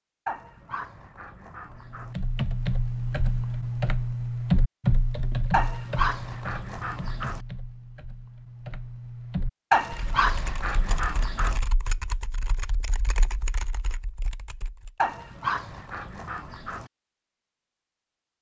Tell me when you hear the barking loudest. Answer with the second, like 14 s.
10 s.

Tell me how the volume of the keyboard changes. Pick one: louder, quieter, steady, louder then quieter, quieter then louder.
quieter.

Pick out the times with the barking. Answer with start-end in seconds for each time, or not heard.
0.2-2.1, 5.5-7.4, 9.7-11.6, 14.9-16.9.